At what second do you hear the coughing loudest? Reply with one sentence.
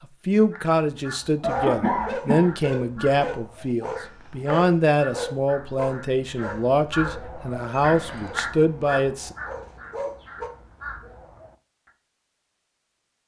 The volume of the coughing peaks at 2 seconds.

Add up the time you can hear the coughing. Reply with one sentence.
You can hear the coughing for 2 seconds altogether.